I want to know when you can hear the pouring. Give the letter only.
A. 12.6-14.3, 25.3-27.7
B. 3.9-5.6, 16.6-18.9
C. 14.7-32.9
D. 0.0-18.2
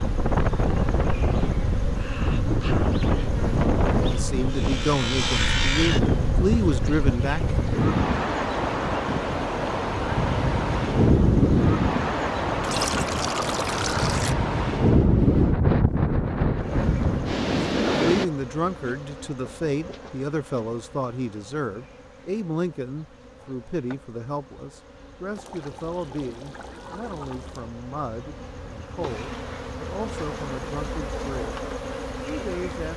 A.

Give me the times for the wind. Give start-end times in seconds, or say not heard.
0.0-18.2.